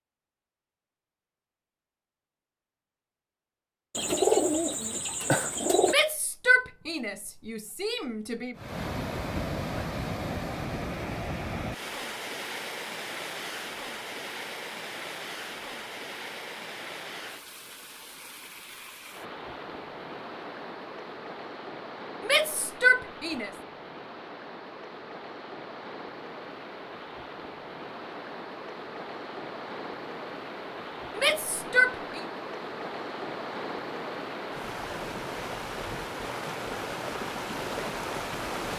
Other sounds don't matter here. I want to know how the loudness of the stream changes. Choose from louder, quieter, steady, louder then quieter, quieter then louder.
quieter then louder.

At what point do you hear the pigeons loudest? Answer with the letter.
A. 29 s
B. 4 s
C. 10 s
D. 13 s
B.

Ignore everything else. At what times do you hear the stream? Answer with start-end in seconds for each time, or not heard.
8.6-38.7.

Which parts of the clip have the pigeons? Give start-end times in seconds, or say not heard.
3.9-6.0.